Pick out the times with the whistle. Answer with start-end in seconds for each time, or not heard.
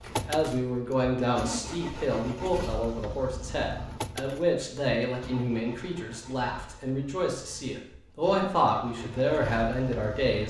not heard.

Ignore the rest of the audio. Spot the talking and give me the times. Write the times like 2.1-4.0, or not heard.
0.1-10.4.